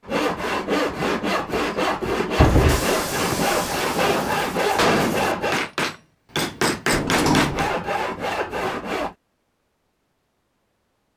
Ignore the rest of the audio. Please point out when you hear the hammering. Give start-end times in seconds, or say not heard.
2.5-7.7.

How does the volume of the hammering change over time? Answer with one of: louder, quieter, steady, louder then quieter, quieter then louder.
louder.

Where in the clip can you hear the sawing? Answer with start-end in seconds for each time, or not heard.
0.1-5.6, 7.4-9.2.